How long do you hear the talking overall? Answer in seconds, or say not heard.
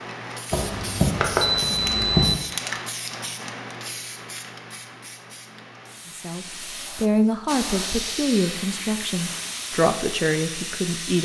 5 s.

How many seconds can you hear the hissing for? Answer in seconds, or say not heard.
11 s.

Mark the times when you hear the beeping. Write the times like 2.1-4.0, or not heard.
0.5-2.4.